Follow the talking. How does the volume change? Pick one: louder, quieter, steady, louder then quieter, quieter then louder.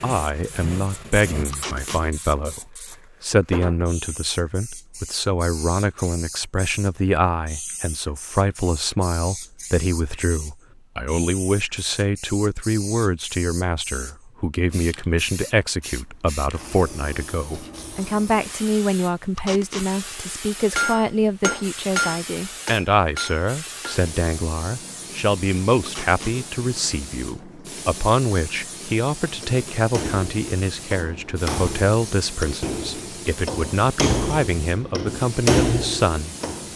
steady.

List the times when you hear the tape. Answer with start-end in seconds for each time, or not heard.
1.5-2.0, 19.4-19.9, 25.9-26.4.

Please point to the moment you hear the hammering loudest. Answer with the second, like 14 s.
36 s.